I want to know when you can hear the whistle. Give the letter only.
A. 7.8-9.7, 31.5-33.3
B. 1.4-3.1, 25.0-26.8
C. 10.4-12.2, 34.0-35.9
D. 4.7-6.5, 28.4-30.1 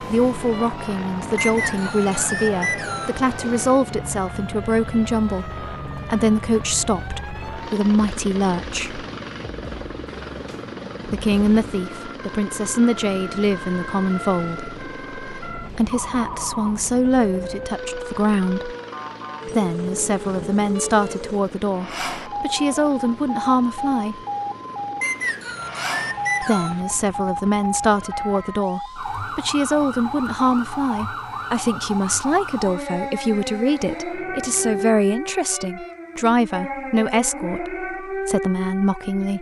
B.